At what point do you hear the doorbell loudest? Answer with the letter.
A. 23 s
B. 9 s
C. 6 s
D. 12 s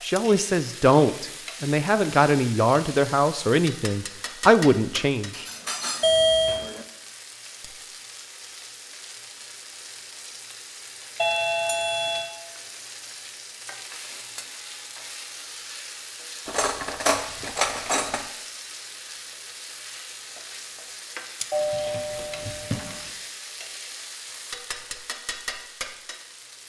C.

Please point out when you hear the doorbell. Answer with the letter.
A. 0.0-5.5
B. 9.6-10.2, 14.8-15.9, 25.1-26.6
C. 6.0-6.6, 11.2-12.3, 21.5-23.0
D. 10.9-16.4
C.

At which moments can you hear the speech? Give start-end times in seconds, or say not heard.
0.0-5.5.